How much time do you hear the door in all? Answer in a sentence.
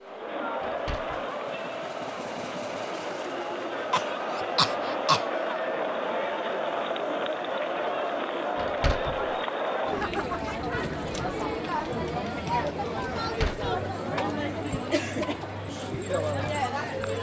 You can hear the door for 2 seconds altogether.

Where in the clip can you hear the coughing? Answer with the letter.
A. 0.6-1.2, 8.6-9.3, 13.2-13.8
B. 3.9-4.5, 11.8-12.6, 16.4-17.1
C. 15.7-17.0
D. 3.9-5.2
D.